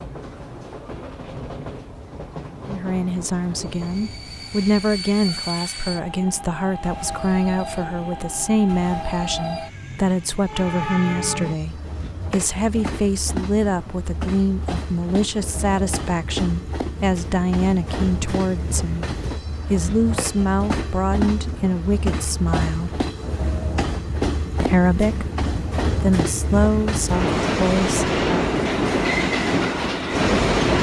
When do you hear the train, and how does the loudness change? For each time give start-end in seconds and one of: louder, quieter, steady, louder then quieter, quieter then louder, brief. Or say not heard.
0.0-30.7 louder.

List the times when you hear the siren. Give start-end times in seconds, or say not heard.
not heard.